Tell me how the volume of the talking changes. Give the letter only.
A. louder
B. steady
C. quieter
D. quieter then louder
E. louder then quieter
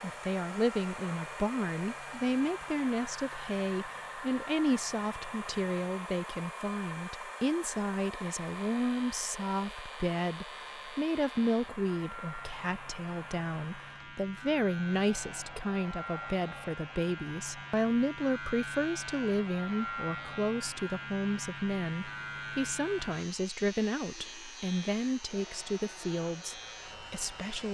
B.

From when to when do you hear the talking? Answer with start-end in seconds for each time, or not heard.
0.0-27.6.